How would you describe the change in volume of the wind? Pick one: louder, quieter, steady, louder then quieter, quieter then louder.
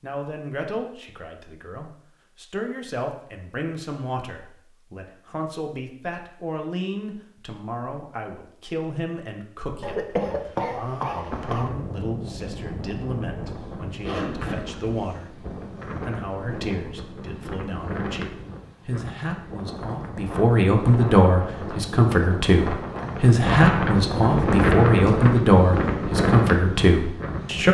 louder.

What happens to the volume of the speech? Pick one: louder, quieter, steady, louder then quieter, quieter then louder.
louder.